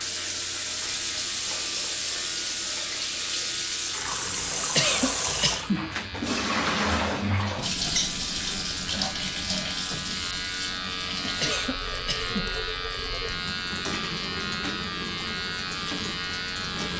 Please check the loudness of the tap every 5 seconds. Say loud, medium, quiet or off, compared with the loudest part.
loud, loud, medium, medium.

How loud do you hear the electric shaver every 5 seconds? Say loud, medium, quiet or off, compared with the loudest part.
medium, medium, loud, loud.